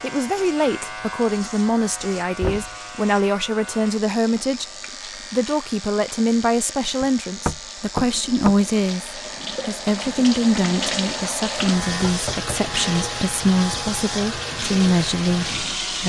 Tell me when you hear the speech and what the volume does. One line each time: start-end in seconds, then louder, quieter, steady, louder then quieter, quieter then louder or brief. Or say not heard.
0.0-16.0 steady.